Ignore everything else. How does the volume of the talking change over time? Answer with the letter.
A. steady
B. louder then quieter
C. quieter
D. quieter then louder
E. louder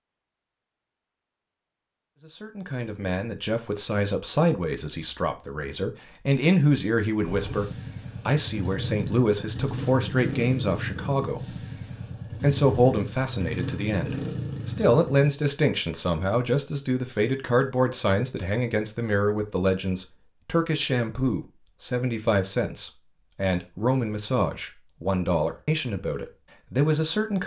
A.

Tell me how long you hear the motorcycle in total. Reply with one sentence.
You can hear the motorcycle for 8 seconds altogether.